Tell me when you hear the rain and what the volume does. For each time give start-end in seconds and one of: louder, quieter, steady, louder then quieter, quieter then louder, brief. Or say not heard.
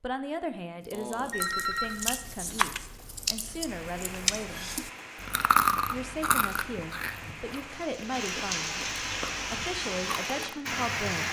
3.6-11.2 louder.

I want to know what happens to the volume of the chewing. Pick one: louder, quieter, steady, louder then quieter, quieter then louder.
louder then quieter.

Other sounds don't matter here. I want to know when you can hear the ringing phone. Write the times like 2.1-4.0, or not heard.
0.9-2.1.